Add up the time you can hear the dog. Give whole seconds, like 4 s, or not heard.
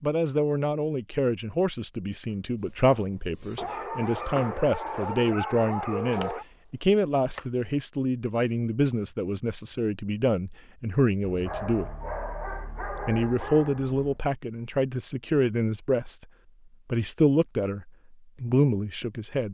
6 s.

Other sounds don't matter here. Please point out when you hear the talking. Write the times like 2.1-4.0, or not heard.
0.0-11.9, 13.1-16.2, 16.9-19.4.